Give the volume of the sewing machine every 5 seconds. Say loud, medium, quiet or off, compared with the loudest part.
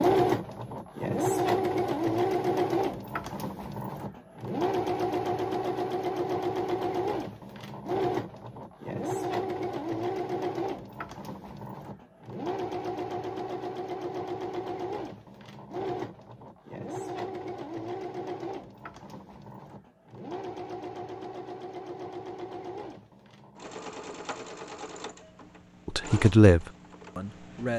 loud, loud, medium, medium, quiet, quiet.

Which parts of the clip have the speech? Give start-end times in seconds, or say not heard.
25.9-27.7.